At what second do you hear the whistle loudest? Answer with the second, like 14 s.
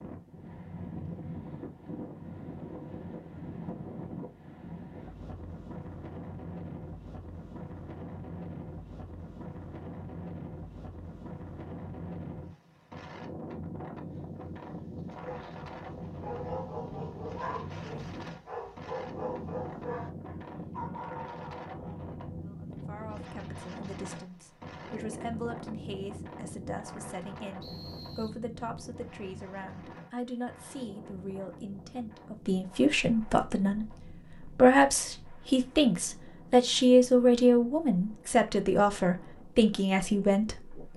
18 s.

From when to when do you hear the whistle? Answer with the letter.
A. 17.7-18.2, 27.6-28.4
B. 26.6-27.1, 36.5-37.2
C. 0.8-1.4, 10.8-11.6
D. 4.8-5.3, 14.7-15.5
A.